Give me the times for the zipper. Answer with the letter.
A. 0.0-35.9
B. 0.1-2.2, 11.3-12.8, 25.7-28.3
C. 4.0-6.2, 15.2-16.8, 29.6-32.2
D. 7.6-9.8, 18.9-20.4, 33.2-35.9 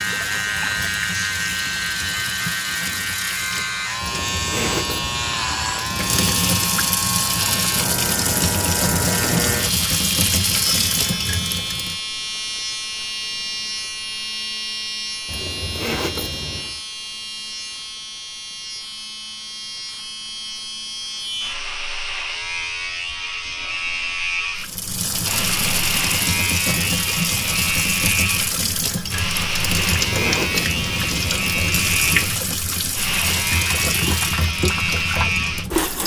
C.